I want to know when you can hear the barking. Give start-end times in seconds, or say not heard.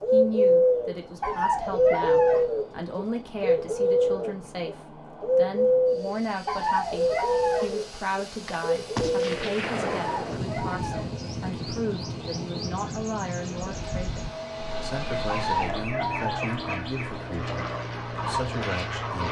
1.2-2.5, 6.5-7.8, 9.9-11.2, 15.2-16.6.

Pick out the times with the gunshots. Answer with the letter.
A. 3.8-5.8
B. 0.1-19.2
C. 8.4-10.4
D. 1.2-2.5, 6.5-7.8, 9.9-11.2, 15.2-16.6
C.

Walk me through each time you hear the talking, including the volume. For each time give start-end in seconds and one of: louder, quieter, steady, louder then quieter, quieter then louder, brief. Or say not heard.
0.1-19.2 steady.